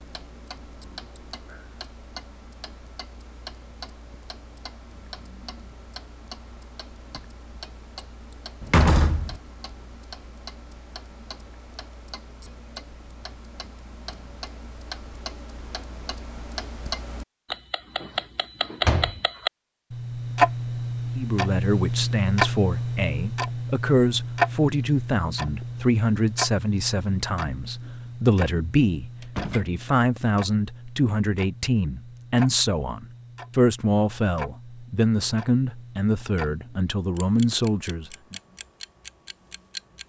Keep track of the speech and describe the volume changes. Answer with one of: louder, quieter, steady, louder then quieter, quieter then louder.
steady.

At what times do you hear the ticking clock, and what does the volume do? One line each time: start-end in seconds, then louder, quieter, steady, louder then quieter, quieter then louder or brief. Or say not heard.
0.0-40.0 louder then quieter.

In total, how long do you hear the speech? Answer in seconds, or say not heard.
17 s.